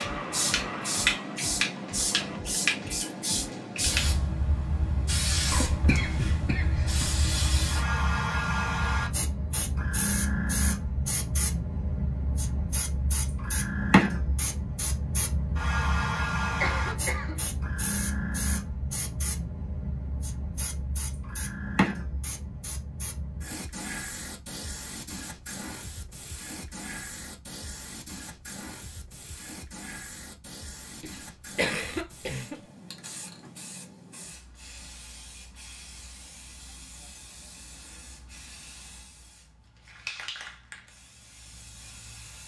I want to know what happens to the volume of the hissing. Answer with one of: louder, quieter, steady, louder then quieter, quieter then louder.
quieter.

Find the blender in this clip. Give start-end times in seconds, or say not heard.
0.0-2.4.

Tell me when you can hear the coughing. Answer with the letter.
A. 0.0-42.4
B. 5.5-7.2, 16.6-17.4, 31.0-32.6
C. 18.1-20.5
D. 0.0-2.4
B.